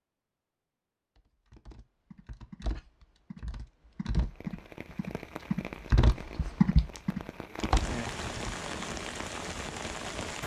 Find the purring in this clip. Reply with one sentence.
You can't hear the purring here.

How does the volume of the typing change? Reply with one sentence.
The loudness of the typing goes up, then down.